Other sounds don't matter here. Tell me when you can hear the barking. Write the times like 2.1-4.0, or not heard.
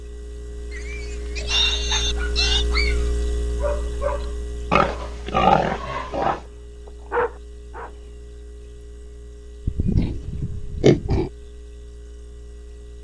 1.9-7.9.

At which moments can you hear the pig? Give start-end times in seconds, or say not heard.
0.7-2.6, 4.7-6.4, 9.7-11.3.